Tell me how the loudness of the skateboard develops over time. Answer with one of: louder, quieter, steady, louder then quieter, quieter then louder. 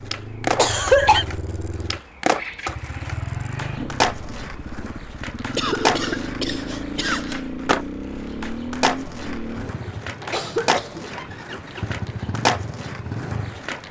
steady.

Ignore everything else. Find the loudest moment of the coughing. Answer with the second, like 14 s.
1 s.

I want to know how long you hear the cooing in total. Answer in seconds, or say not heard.
not heard.